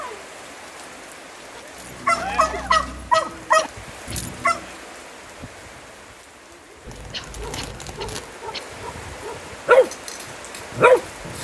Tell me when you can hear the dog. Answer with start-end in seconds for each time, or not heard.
1.8-4.7, 7.3-11.3.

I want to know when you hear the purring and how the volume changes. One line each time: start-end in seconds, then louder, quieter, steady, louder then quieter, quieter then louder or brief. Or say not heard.
not heard.